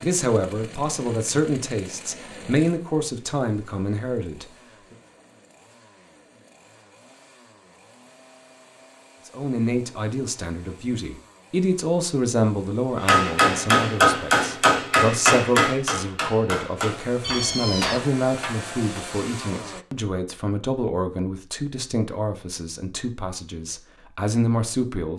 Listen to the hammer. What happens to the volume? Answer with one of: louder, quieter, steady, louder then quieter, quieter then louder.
quieter.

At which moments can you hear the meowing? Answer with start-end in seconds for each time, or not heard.
17.2-18.1.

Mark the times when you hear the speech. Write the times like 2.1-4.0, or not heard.
0.0-5.0, 9.2-25.1.